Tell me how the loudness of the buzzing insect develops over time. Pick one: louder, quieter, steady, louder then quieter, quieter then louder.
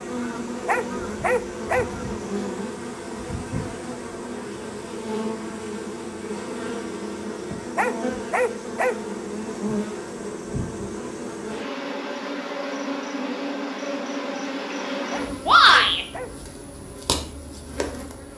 steady.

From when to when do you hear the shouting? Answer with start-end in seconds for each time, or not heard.
15.4-16.1.